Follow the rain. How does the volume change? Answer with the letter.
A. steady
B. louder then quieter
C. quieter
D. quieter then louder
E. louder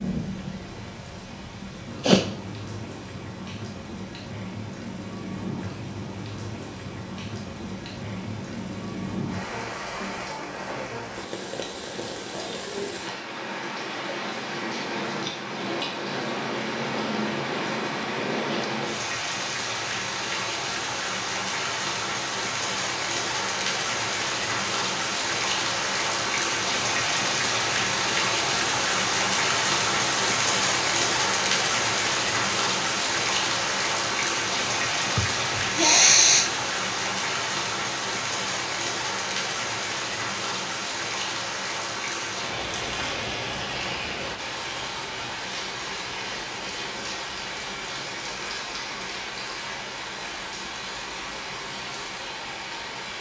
B.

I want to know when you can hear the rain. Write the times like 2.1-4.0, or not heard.
0.0-53.1.